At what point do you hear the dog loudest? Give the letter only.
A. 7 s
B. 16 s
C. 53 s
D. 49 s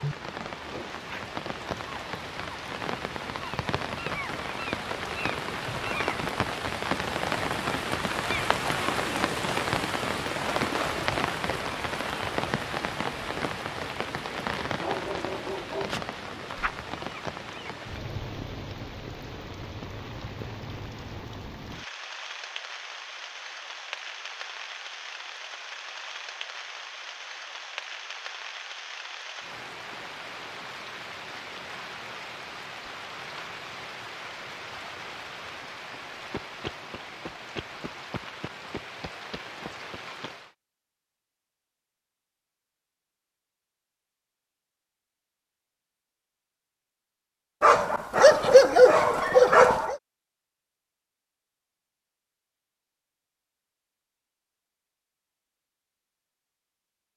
D.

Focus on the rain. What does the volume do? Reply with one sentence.
The loudness of the rain goes down.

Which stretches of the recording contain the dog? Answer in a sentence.
The dog can be heard from 14.8 to 16.8 s and from 47.6 to 50.0 s.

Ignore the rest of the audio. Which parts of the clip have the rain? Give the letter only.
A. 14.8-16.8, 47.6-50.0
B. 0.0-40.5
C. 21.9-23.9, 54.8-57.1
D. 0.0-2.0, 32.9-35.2
B.